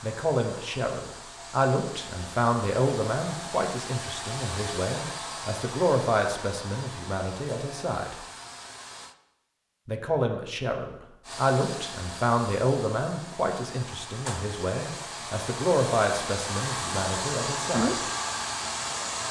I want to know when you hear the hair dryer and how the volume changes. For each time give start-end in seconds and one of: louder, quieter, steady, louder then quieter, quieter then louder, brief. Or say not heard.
0.0-9.2 louder then quieter
11.2-19.2 louder.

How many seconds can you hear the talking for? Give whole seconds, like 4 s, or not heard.
16 s.